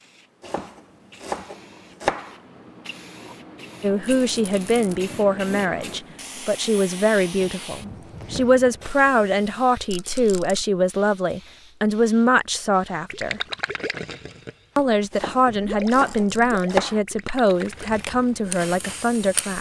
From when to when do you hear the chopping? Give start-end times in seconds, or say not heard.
0.4-2.4, 15.1-17.0.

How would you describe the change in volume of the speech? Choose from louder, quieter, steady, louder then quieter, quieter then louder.
steady.